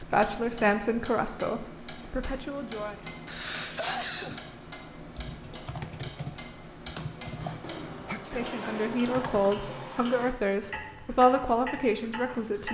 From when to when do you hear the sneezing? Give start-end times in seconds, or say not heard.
3.2-4.5, 7.2-8.4.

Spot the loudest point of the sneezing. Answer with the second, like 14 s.
4 s.